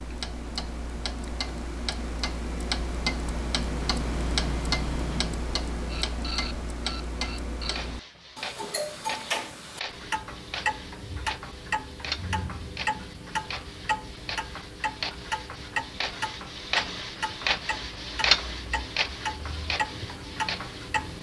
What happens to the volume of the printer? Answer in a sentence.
The volume of the printer goes up.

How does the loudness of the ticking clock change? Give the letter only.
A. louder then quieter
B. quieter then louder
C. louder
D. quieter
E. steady
E.